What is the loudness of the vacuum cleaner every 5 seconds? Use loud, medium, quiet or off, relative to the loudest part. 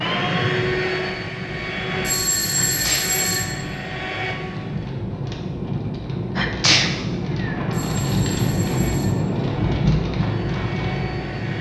loud, medium, medium.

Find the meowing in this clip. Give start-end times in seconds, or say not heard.
not heard.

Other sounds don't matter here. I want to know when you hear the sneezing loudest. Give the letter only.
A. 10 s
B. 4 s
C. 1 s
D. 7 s
D.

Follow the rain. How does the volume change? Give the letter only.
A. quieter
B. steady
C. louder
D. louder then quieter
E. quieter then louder
C.